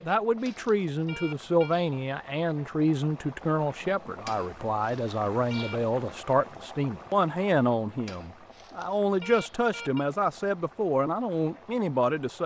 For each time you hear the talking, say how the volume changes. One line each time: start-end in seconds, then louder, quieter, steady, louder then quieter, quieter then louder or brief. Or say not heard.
0.1-12.4 steady.